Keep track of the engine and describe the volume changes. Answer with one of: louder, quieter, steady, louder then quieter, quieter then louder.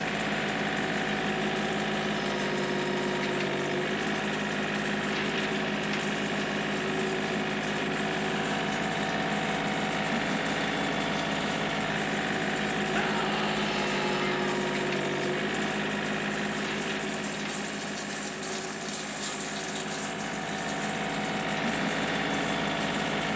steady.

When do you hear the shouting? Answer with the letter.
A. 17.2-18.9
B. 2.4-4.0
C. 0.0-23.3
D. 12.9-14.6
D.